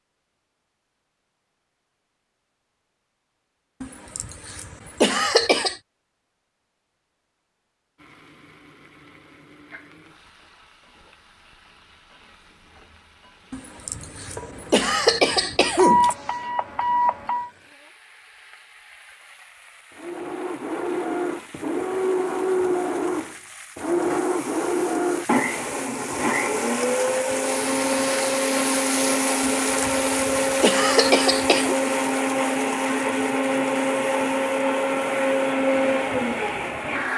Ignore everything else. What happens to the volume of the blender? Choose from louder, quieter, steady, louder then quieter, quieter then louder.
steady.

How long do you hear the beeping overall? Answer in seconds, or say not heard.
2 s.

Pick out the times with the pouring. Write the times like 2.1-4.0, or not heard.
not heard.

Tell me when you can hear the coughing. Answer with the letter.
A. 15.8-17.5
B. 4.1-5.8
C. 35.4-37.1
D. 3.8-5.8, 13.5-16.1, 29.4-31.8
D.